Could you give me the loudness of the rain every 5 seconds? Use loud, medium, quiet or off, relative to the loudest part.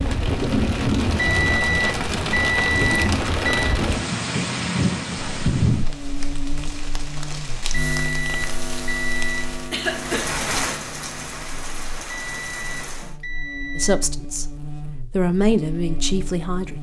loud, medium, medium, off.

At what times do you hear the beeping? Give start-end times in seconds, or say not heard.
1.1-3.8, 7.7-9.5, 12.1-13.9.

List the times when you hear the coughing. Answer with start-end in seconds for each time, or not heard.
9.7-10.2.